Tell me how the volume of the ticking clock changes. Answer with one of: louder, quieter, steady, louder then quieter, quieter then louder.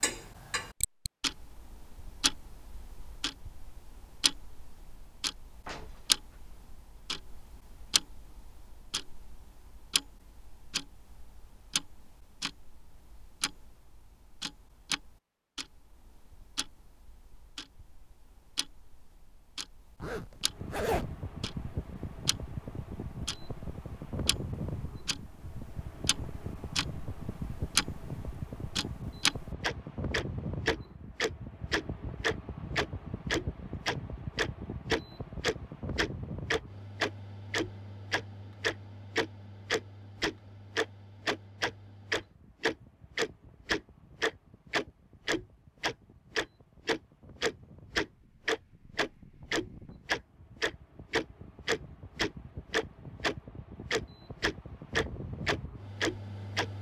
quieter then louder.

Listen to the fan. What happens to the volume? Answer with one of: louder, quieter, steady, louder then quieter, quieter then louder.
quieter then louder.